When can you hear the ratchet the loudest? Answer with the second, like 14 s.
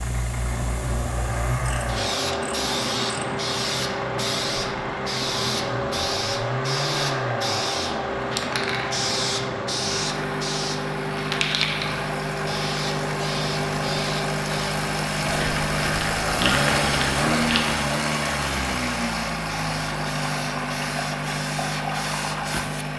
17 s.